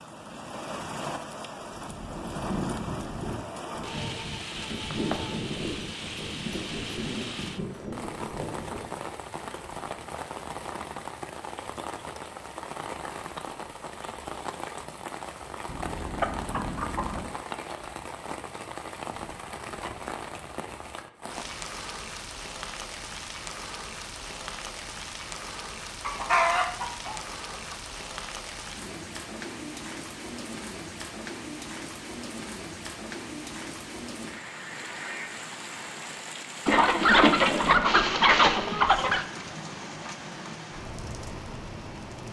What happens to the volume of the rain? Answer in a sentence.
The loudness of the rain stays about the same.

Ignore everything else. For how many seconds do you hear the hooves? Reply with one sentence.
The hooves can be heard for 7 seconds in total.